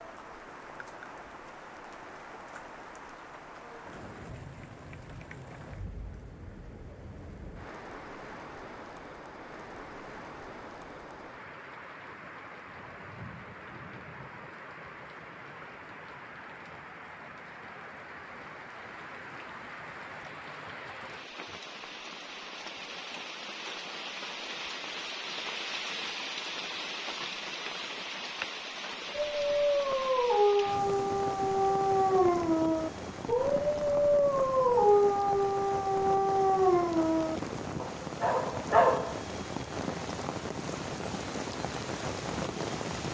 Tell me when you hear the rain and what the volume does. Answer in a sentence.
The rain can be heard from 0.0 to 43.0 s, getting louder.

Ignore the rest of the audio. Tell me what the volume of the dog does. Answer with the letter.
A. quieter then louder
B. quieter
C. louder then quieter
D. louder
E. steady
E.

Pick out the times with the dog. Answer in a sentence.
The dog can be heard from 29.1 to 39.2 s.